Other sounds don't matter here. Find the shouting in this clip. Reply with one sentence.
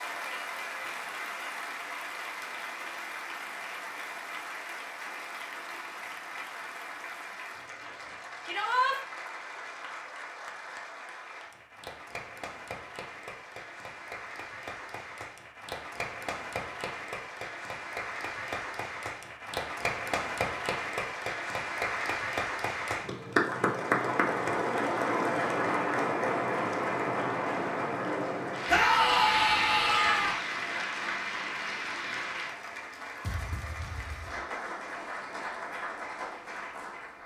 You can hear the shouting from 8.4 to 9.0 s and from 28.6 to 30.4 s.